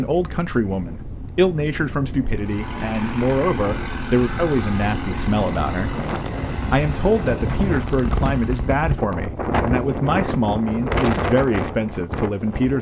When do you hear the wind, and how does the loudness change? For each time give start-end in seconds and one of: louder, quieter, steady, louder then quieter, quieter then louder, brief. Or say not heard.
0.0-12.7 louder.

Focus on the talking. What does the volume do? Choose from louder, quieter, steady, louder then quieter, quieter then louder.
steady.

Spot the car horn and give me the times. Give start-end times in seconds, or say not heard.
not heard.